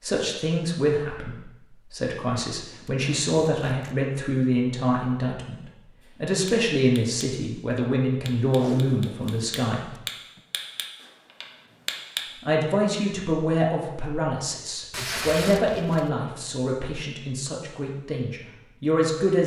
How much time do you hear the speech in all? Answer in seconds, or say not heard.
17 s.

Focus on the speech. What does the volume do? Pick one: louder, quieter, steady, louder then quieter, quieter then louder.
steady.